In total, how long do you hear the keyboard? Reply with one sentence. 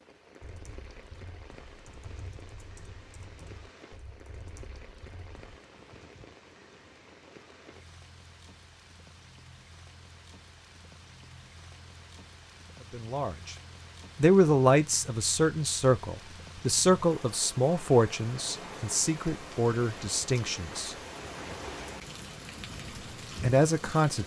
You can hear the keyboard for 5 seconds altogether.